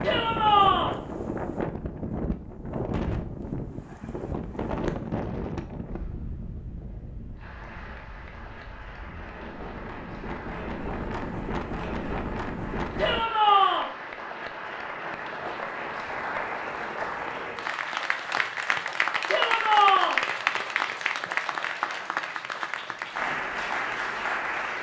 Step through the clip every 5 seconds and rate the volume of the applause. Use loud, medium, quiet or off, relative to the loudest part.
off, quiet, medium, loud, loud.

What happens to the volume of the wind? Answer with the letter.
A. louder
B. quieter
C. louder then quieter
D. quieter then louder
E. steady
D.